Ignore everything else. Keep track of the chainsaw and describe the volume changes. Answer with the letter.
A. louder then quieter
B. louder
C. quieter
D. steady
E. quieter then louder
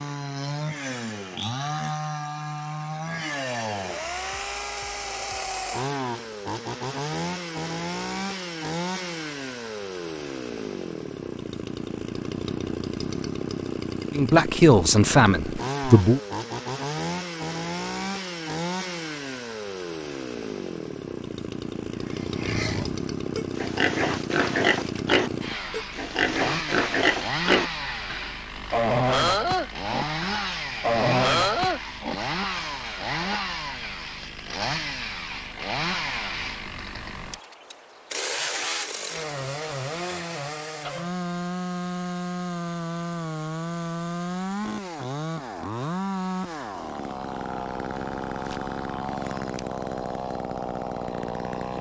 D.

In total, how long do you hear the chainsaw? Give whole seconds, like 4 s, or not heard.
52 s.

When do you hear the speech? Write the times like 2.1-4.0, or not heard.
14.1-16.2.